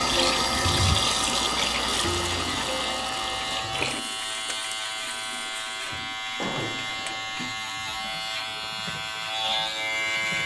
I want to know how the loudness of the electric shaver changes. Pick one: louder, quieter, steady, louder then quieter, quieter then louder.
steady.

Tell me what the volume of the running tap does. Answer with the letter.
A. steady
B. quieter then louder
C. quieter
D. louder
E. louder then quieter
C.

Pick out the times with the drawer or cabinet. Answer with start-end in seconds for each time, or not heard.
0.5-1.1, 6.3-7.6.